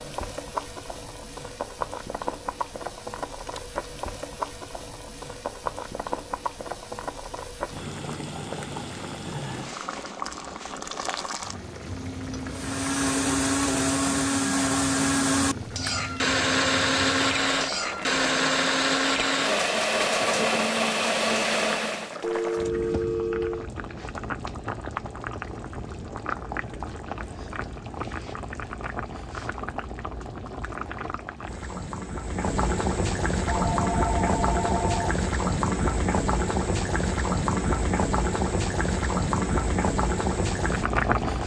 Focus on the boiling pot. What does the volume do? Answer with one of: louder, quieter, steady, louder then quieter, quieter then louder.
louder.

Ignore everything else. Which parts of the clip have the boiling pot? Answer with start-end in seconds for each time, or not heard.
0.0-41.4.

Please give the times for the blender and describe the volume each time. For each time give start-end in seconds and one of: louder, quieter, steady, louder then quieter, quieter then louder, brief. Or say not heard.
12.5-22.1 steady.